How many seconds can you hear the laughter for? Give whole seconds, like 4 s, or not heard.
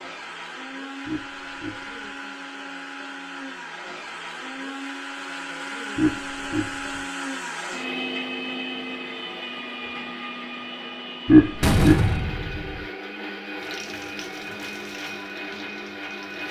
3 s.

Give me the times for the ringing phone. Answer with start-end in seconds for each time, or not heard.
not heard.